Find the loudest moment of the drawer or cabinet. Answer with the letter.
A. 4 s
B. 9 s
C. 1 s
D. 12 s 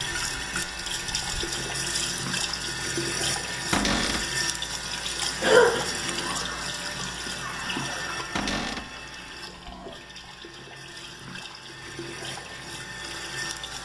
A.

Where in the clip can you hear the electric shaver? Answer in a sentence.
The electric shaver can be heard from 0.0 to 13.7 s.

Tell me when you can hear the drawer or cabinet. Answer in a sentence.
You can hear the drawer or cabinet from 3.7 to 4.3 s and from 8.3 to 8.9 s.